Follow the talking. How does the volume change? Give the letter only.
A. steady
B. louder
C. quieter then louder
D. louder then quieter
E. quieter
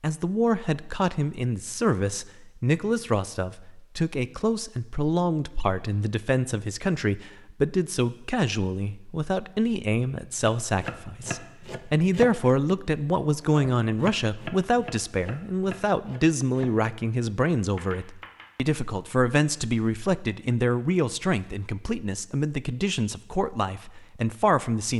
A.